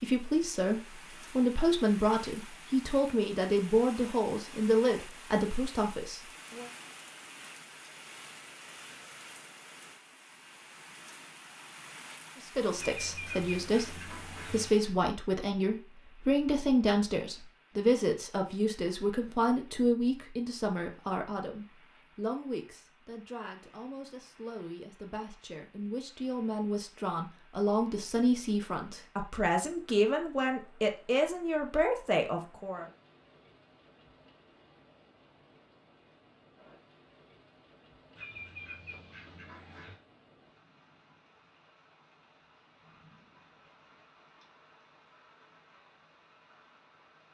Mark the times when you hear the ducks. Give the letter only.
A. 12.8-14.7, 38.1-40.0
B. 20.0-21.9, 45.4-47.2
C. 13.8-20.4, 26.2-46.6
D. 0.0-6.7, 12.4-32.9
A.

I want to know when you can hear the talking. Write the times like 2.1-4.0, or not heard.
0.0-6.7, 12.4-32.9.